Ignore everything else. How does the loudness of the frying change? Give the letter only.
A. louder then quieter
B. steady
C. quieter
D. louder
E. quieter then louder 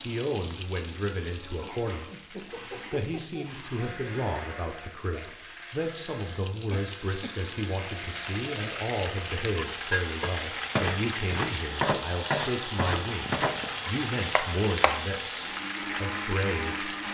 D.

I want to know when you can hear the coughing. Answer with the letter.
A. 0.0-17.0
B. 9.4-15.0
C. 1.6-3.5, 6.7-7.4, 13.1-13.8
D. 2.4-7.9
C.